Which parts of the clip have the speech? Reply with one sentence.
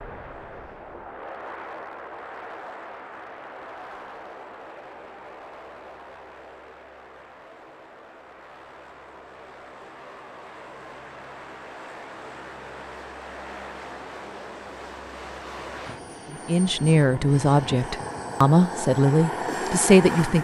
The speech can be heard from 16.3 to 20.3 s.